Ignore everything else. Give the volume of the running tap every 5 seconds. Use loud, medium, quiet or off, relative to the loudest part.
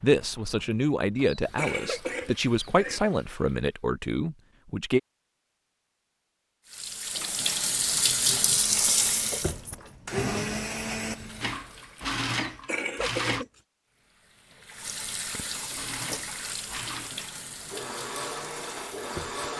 quiet, loud, quiet, medium.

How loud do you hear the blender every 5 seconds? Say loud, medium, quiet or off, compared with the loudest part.
off, quiet, loud, medium.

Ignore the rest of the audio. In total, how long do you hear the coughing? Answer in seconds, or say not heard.
3 s.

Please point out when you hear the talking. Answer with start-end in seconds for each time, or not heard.
0.0-5.0.